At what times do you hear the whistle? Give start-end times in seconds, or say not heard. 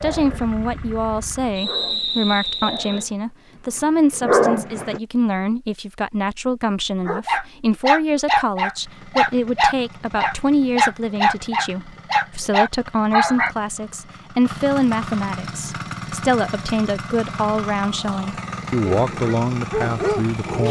1.6-3.0.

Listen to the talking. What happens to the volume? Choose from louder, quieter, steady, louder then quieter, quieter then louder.
steady.